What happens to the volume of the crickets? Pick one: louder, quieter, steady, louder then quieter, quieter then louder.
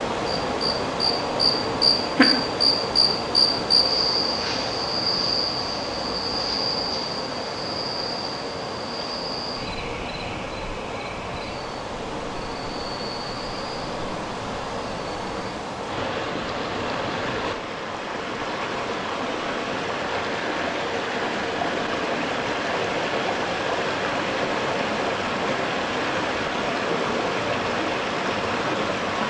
quieter.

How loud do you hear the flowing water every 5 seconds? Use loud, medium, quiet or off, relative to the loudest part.
loud, medium, medium, loud, loud, loud.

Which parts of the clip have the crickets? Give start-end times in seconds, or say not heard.
0.1-15.5.